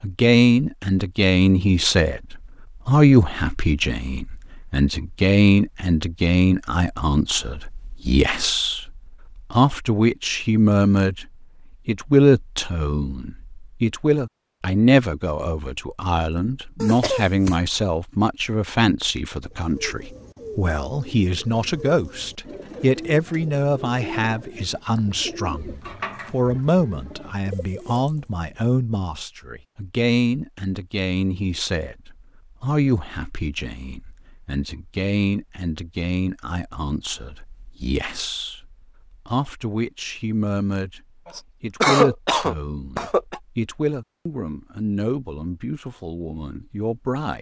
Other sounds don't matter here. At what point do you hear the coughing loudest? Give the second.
42 s.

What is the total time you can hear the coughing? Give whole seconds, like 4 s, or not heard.
3 s.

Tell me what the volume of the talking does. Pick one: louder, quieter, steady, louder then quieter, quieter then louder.
quieter.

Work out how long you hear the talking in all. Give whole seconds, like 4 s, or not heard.
46 s.